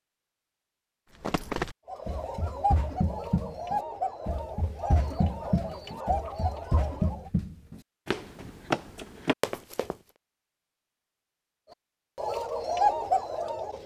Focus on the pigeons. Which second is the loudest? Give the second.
13 s.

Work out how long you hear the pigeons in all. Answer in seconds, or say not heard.
7 s.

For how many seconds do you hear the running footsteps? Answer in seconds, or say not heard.
9 s.